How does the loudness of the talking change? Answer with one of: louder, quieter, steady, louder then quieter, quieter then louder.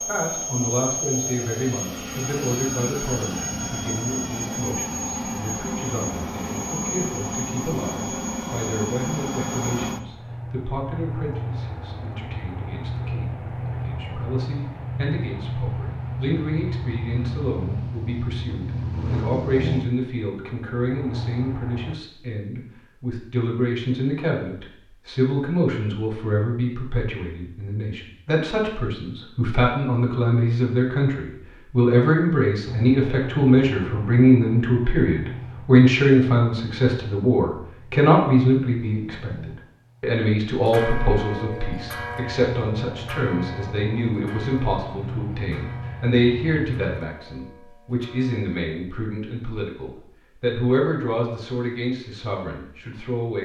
louder then quieter.